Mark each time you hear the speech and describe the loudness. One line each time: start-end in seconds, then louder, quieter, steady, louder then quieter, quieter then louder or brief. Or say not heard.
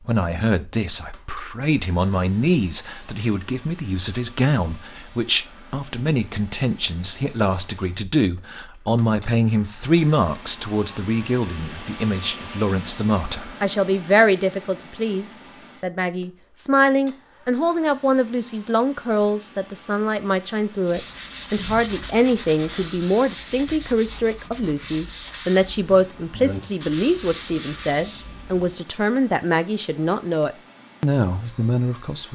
0.0-32.3 steady.